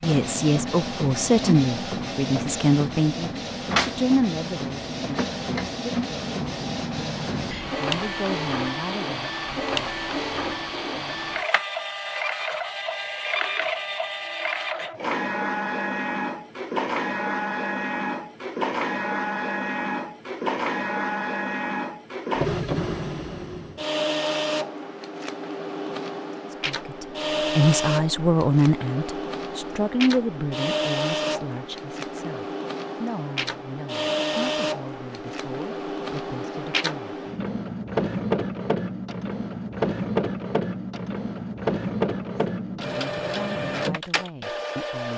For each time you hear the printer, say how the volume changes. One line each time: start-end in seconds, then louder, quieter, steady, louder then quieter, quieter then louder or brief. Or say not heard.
0.0-45.1 steady.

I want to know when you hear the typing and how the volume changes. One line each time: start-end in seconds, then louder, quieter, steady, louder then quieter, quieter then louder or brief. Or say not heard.
not heard.